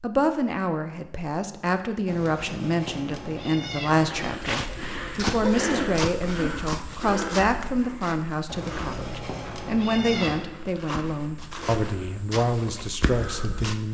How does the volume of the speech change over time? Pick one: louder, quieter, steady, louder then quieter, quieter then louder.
steady.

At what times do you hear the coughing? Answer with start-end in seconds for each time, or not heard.
4.5-6.7.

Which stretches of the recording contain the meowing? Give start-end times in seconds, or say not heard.
2.0-4.5, 8.4-10.5.